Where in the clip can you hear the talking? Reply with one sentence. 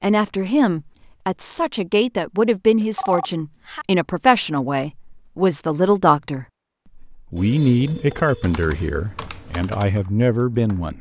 The talking can be heard from 0.0 to 10.9 s.